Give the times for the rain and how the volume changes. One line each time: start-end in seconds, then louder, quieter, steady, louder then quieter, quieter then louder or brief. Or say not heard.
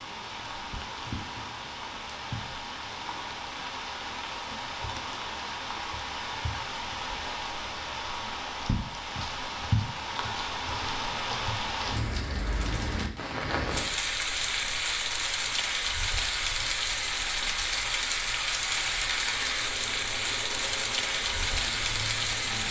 0.0-22.6 louder.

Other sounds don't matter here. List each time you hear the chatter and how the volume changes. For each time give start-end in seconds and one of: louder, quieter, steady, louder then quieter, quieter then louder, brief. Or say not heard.
not heard.